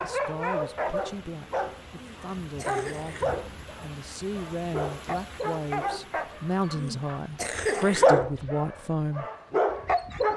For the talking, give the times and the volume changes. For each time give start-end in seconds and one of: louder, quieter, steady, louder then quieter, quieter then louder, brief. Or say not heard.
0.0-9.2 louder.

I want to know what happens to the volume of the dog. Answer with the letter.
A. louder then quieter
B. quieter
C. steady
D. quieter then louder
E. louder
D.